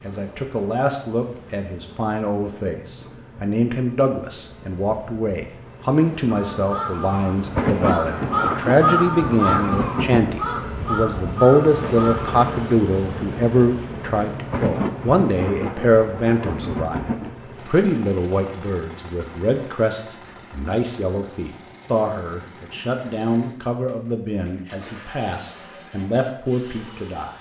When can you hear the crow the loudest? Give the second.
9 s.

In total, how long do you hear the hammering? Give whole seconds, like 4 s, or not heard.
not heard.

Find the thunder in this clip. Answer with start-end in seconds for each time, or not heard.
7.3-10.3, 14.3-17.3.